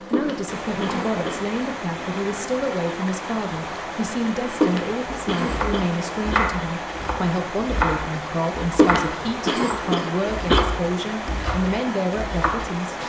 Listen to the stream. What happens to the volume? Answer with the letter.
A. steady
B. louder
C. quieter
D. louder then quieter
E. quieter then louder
A.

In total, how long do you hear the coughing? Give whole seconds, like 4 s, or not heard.
5 s.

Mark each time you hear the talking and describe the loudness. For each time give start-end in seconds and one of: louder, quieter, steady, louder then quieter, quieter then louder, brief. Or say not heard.
0.0-13.0 steady.